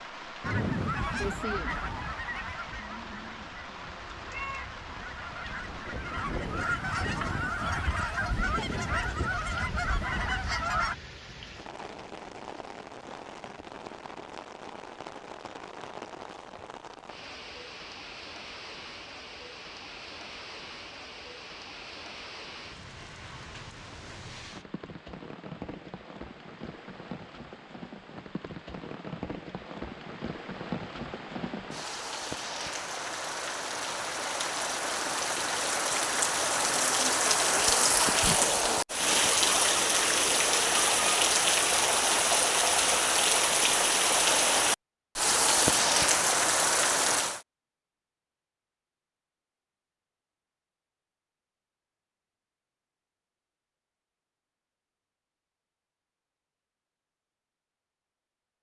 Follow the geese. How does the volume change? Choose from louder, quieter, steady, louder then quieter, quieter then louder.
quieter then louder.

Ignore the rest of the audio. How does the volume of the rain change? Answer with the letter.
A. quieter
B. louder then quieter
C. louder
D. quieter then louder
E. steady
C.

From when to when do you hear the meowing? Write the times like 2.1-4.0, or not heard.
2.9-4.8.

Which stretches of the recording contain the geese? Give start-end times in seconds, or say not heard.
0.4-10.9.